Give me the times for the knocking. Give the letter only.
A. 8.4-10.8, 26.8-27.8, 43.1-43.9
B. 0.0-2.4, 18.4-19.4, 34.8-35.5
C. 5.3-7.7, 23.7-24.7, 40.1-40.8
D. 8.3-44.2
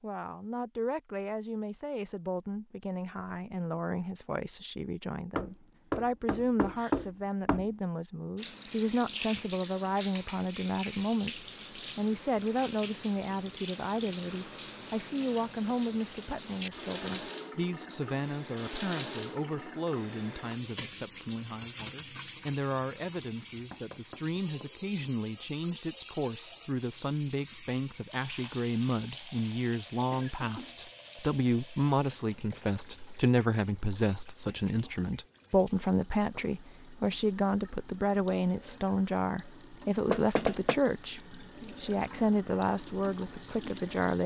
C.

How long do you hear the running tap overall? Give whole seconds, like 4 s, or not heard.
36 s.